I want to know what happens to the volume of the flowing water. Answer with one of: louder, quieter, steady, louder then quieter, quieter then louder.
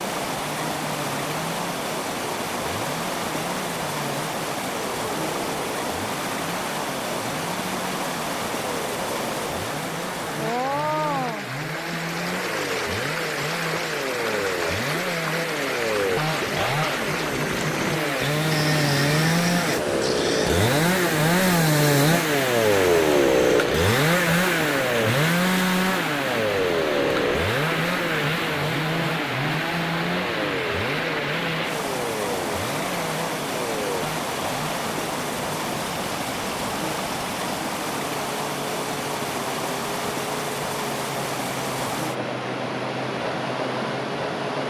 steady.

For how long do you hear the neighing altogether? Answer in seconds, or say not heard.
2 s.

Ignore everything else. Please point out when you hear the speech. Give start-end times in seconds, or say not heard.
not heard.